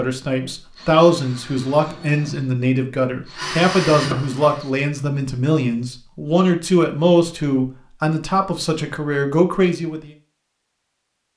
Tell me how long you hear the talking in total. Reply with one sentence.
You can hear the talking for 10 seconds altogether.